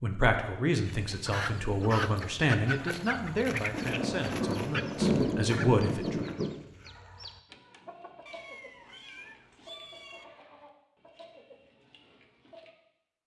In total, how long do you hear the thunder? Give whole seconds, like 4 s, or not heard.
3 s.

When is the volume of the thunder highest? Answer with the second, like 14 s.
5 s.